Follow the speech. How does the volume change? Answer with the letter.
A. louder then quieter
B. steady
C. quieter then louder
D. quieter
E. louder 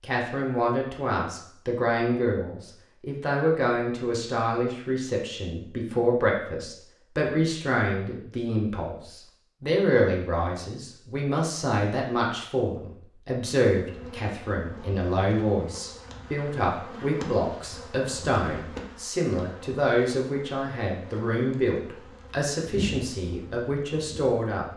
B.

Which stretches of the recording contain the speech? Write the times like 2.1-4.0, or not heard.
0.0-24.7.